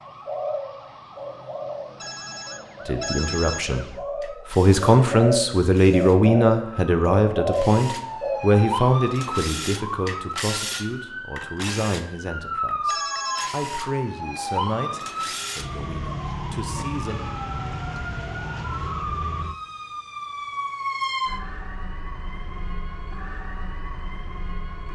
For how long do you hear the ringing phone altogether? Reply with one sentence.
You can hear the ringing phone for 2 seconds altogether.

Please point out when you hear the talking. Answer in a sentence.
The talking can be heard from 2.9 to 3.9 s and from 4.5 to 17.2 s.